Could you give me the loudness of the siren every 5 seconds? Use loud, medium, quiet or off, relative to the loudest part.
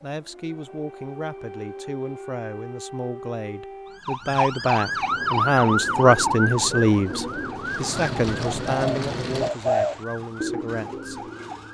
medium, loud, quiet.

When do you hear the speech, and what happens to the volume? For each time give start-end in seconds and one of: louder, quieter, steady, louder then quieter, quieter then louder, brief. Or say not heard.
0.0-11.3 louder then quieter.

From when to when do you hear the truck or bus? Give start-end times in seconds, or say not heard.
7.0-9.5.